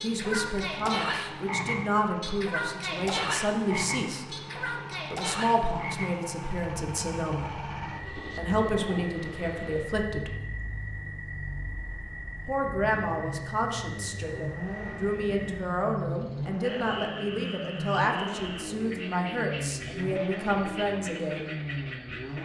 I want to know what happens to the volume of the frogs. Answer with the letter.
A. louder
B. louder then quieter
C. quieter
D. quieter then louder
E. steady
C.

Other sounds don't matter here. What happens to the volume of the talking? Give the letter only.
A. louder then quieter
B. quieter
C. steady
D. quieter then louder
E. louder
C.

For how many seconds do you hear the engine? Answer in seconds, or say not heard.
22 s.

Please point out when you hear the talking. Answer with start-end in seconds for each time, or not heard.
0.0-4.3, 5.1-10.3, 12.4-21.5.